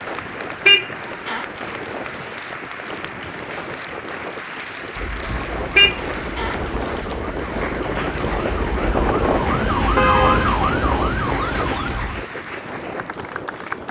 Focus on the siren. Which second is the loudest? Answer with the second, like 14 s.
10 s.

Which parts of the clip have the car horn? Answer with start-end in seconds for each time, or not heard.
0.7-1.4, 5.8-6.5, 9.9-11.9.